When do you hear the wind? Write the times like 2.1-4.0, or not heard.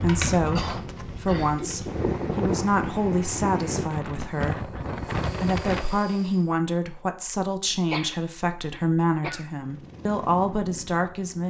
0.0-5.8.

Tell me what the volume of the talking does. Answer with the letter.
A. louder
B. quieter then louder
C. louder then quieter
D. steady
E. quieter
D.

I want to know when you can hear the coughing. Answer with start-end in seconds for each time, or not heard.
0.6-1.6, 7.9-9.5.